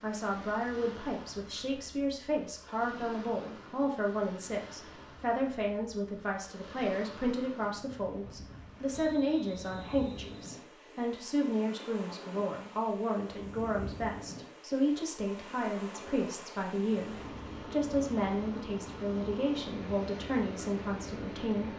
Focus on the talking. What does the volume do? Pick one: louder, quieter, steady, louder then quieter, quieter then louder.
steady.